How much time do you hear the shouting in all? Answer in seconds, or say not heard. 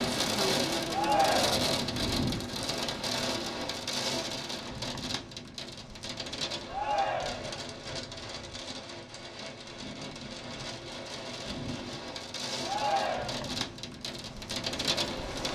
3 s.